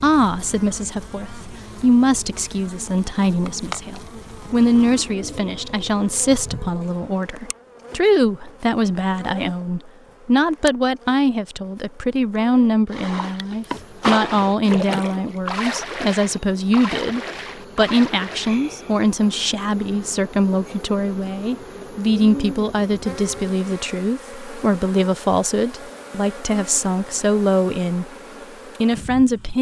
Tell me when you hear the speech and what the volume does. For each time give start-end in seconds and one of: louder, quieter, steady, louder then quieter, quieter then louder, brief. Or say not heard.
0.0-28.1 steady
28.8-29.5 brief.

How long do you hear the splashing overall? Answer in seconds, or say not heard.
6 s.